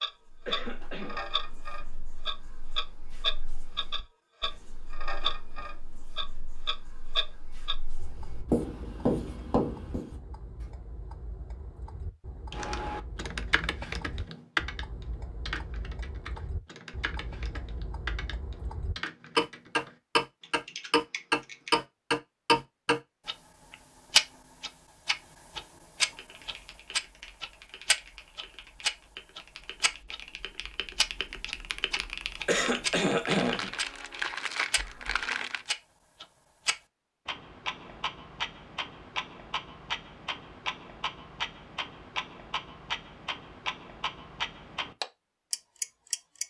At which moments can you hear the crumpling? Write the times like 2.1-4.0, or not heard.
33.2-35.7.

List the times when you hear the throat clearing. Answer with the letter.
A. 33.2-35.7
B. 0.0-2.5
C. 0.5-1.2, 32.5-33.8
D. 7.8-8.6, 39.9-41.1
C.